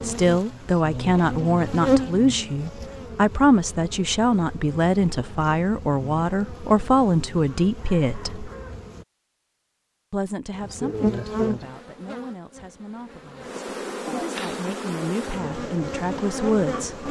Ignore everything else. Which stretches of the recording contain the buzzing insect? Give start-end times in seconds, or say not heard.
0.0-9.1, 10.5-17.0.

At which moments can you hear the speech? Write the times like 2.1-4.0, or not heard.
0.0-8.5, 10.1-17.0.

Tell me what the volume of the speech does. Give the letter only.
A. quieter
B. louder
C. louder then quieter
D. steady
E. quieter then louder
E.